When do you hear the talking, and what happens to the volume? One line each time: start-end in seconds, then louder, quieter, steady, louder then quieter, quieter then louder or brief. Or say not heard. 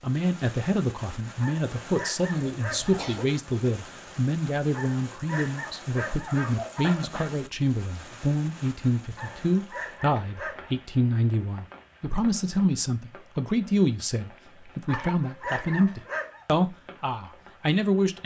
0.0-18.2 steady.